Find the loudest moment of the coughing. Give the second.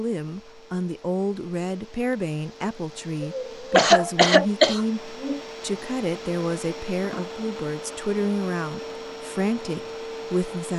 4 s.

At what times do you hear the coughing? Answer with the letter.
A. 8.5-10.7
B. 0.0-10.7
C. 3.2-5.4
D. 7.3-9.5
C.